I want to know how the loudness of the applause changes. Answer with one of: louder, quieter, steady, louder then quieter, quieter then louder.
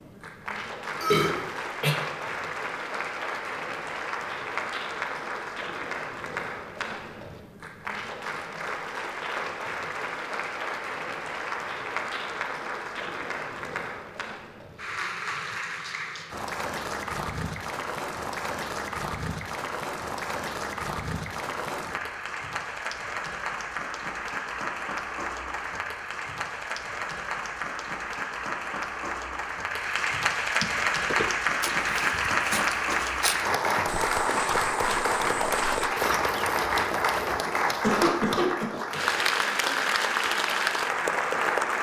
louder.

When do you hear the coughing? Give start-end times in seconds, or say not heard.
1.0-1.9, 37.6-38.7.